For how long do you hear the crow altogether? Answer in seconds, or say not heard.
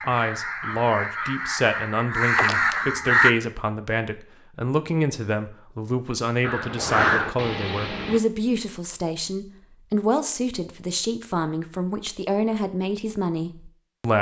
5 s.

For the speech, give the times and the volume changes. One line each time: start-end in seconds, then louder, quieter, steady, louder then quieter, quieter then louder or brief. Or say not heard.
0.1-14.1 steady.